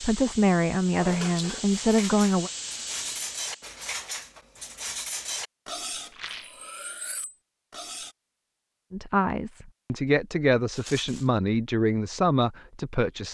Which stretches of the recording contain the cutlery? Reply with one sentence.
You can hear the cutlery from 0.9 to 8.2 s.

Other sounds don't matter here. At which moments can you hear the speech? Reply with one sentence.
You can hear the speech from 0.0 to 2.5 s and from 8.9 to 13.2 s.